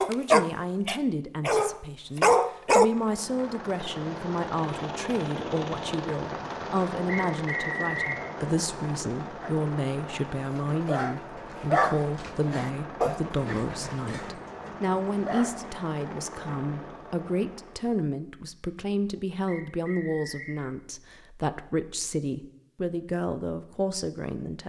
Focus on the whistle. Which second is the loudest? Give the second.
8 s.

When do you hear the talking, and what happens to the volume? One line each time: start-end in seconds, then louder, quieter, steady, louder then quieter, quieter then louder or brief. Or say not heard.
0.1-24.6 steady.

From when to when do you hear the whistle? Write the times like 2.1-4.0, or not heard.
7.2-8.2, 19.4-20.6.